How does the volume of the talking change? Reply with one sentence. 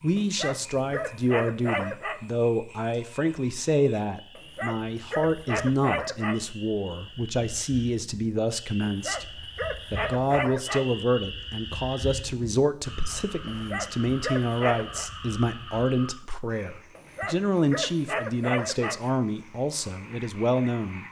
The volume of the talking stays about the same.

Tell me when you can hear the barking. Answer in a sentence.
The barking can be heard from 0.1 to 2.2 s, from 4.3 to 6.5 s, from 8.8 to 10.8 s, from 13.4 to 15.1 s and from 16.9 to 19.1 s.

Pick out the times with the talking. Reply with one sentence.
You can hear the talking from 0.0 to 21.0 s.